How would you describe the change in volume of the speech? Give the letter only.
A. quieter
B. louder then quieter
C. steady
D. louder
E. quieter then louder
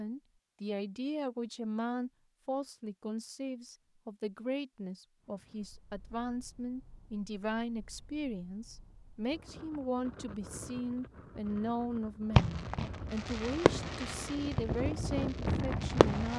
C.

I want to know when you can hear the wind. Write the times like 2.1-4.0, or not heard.
5.2-16.3.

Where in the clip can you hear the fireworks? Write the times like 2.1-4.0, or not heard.
12.3-16.3.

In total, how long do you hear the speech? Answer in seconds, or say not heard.
16 s.